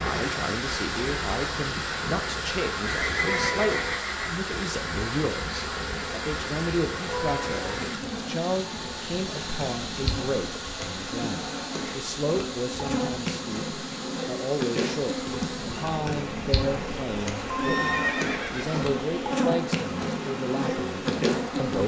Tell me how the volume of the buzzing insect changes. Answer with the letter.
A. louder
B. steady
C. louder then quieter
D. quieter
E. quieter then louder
A.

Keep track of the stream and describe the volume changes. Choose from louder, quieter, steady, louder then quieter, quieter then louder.
quieter.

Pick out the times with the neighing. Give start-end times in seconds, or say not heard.
3.0-4.3, 17.4-18.9.